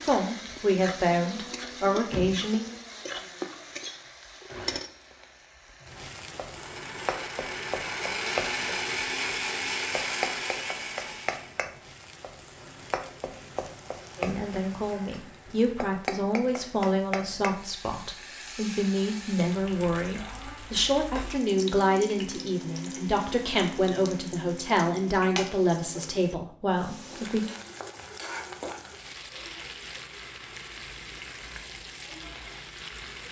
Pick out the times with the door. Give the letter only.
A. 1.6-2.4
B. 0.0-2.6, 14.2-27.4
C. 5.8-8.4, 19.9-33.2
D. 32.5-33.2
A.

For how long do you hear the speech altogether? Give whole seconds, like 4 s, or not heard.
16 s.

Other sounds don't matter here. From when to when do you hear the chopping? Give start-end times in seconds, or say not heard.
not heard.